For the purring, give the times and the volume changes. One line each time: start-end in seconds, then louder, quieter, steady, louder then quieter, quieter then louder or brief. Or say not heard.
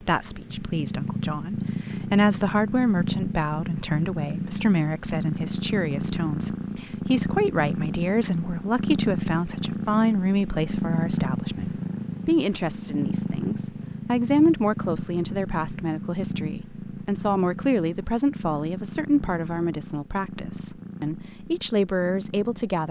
0.0-22.8 quieter.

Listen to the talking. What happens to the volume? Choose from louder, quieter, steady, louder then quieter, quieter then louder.
steady.